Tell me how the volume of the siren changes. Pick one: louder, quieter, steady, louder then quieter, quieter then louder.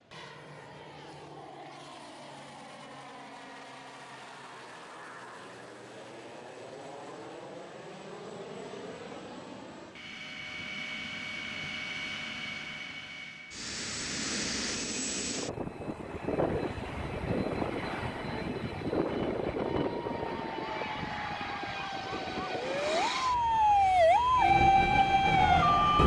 louder.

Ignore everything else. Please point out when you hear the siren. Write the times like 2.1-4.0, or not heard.
19.7-26.0.